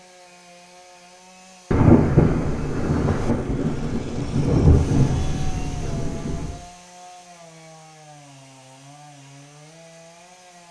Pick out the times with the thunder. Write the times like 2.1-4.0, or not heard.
1.7-6.6.